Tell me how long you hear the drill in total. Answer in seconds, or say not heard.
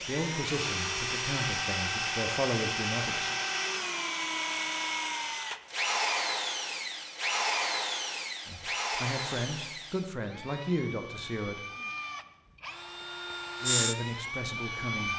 15 s.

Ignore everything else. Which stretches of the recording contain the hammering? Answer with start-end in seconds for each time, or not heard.
not heard.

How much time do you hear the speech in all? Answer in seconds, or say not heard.
8 s.